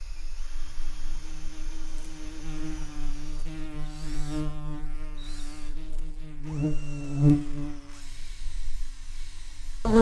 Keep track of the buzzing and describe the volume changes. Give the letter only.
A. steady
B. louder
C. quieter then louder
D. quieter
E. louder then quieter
E.